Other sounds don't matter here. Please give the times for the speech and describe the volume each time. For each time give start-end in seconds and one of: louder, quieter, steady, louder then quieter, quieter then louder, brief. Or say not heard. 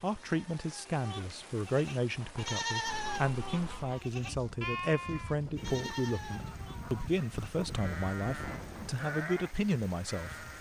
0.0-10.4 steady.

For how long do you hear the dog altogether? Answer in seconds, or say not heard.
not heard.